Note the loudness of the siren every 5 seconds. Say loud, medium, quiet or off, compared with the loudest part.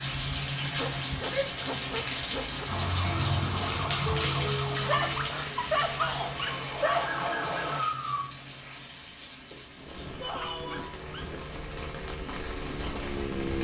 loud, loud, off.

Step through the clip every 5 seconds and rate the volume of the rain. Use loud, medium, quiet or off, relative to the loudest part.
loud, medium, medium.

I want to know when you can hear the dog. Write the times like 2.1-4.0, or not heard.
0.7-2.6, 4.8-7.1, 9.5-11.5.